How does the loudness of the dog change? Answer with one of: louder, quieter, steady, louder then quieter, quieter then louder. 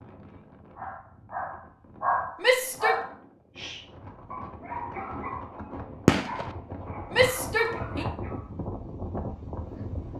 quieter.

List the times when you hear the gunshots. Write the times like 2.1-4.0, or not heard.
6.0-6.5.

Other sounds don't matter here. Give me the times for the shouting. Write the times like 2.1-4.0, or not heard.
2.4-3.0, 7.1-8.1.